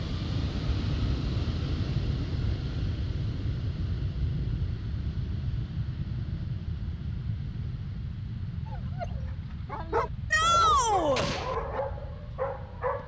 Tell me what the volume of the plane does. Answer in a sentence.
The volume of the plane goes down.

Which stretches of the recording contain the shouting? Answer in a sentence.
The shouting can be heard from 10.3 to 11.2 s.